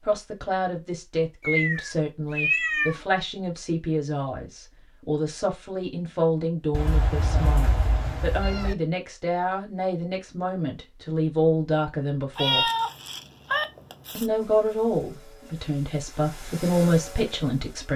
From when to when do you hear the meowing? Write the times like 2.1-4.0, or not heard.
1.4-3.0, 6.7-8.8, 12.3-14.2.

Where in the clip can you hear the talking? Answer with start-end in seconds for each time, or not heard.
0.0-12.7, 14.2-17.9.